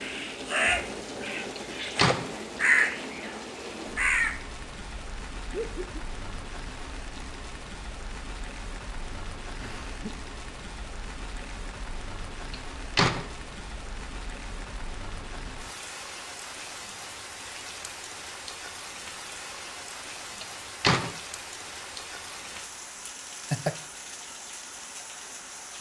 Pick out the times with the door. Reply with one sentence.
You can hear the door from 1.6 to 2.3 s, from 12.5 to 13.2 s and from 20.4 to 21.1 s.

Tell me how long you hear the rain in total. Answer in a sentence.
The rain can be heard for 26 seconds in total.